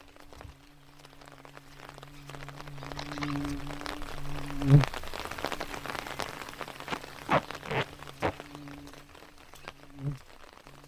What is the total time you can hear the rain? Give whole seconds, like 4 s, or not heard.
11 s.